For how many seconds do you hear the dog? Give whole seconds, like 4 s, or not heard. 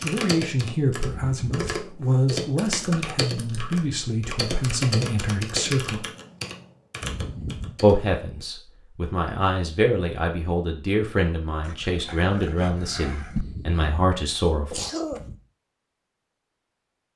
2 s.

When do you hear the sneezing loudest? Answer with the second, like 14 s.
15 s.